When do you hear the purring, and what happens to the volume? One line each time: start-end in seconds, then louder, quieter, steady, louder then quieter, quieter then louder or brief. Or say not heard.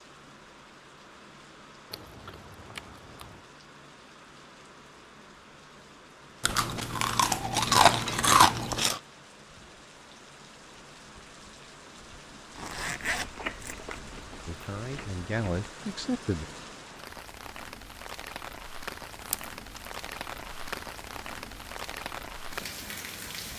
not heard.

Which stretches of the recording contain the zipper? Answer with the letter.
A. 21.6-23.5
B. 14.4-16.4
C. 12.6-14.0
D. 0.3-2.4
C.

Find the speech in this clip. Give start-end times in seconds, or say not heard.
14.4-16.4.